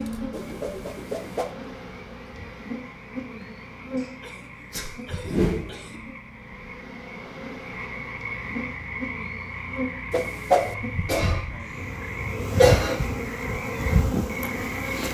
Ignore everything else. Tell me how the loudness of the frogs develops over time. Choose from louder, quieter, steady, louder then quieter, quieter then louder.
louder.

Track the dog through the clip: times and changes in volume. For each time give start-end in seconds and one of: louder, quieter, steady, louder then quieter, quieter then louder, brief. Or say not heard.
not heard.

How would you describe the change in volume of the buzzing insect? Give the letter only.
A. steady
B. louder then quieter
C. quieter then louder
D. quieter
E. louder
E.